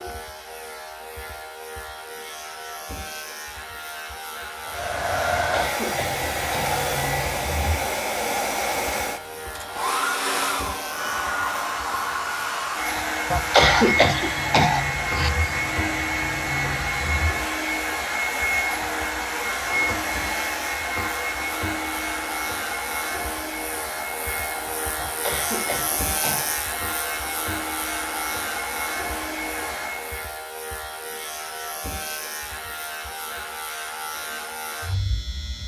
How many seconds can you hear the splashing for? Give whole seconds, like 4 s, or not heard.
not heard.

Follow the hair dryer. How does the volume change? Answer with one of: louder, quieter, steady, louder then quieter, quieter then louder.
quieter.